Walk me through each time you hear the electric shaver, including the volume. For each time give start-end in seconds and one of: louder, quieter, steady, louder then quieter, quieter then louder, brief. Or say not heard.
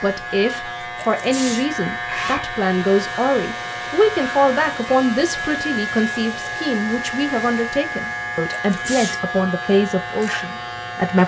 0.0-11.2 steady.